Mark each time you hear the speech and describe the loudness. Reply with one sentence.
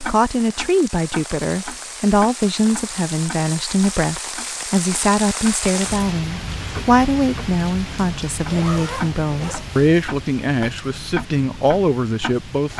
You can hear the speech from 0.0 to 12.7 s, at a steady volume.